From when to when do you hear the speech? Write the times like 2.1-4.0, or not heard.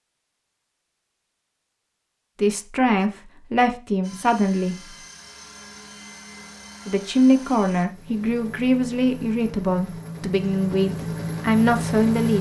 2.4-4.8, 6.8-12.3.